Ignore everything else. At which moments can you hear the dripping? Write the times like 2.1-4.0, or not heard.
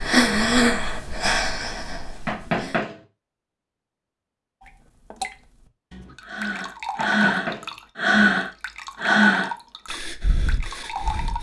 4.6-11.3.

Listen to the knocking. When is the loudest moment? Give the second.
3 s.